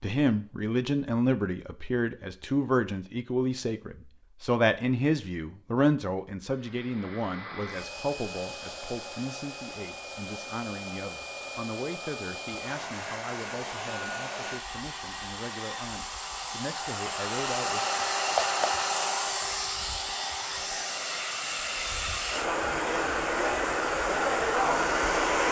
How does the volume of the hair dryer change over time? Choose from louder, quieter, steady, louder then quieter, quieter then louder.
louder.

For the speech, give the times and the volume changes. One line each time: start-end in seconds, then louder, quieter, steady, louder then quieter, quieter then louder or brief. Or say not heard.
0.0-17.9 quieter.